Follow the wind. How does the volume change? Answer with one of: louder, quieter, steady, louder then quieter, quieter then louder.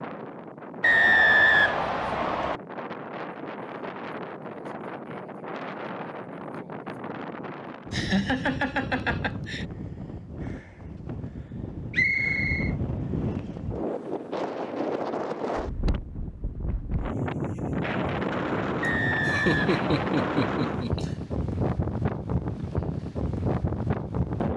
louder.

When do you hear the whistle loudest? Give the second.
1 s.